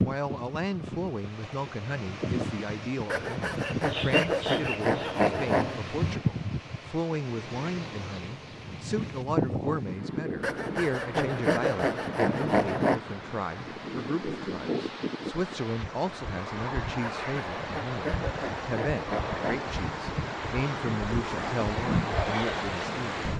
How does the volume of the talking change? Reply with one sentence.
The loudness of the talking stays about the same.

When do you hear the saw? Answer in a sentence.
The saw can be heard from 3.1 to 5.8 s, from 10.4 to 13.0 s and from 17.0 to 19.8 s.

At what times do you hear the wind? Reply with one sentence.
You can hear the wind from 0.0 to 23.3 s.